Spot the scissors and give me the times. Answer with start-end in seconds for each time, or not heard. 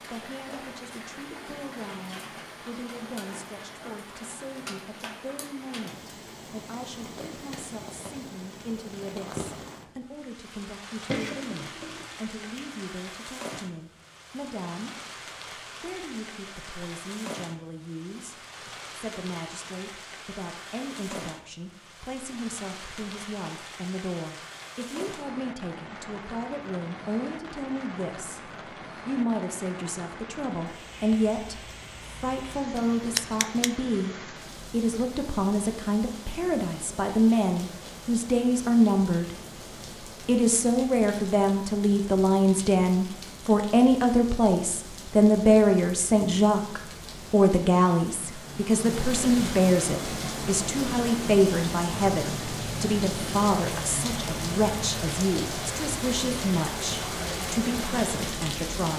11.1-12.7, 32.8-33.7.